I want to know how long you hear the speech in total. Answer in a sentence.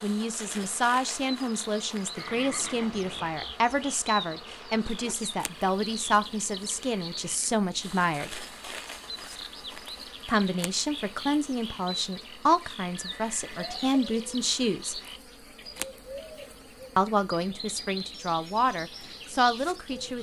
You can hear the speech for 16 seconds altogether.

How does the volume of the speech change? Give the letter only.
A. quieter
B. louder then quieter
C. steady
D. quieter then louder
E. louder
C.